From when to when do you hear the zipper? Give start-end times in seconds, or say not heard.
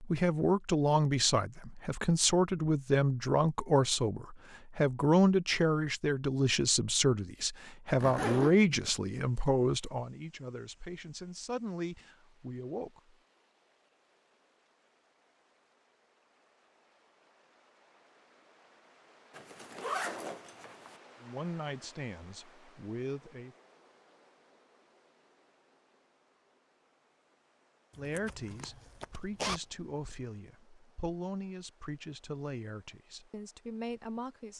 7.9-8.5, 19.3-20.9, 27.9-30.1.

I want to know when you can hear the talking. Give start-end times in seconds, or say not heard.
0.0-13.2, 21.2-23.6, 27.9-34.5.